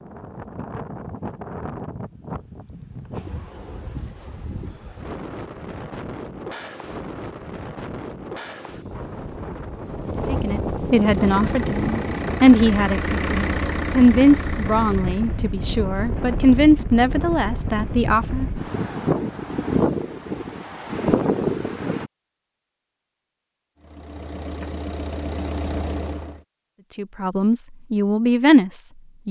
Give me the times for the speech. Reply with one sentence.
The speech can be heard from 10.2 to 18.4 s and from 26.9 to 29.2 s.